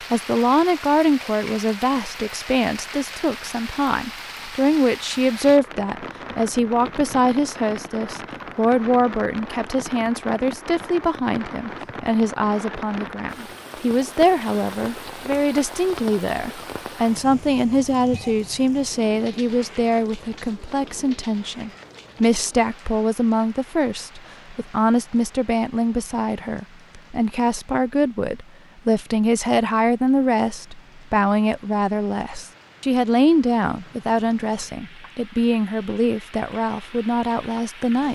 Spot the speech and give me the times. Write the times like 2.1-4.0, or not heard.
0.1-38.1.